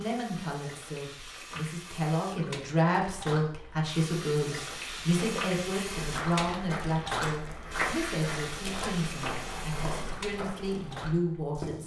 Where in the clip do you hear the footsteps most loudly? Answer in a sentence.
The loudest moment of the footsteps is at 8 seconds.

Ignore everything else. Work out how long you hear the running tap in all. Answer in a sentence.
You can hear the running tap for 12 seconds altogether.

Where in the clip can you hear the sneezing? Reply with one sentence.
The sneezing can't be heard in this clip.